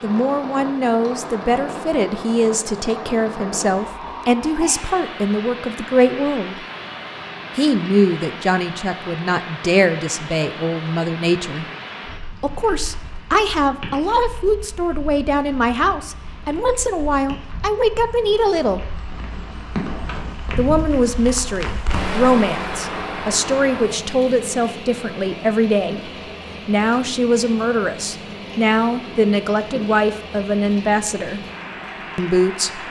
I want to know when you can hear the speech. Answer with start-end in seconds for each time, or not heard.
0.0-6.5, 7.5-11.7, 12.4-18.8, 20.6-31.4, 32.1-32.8.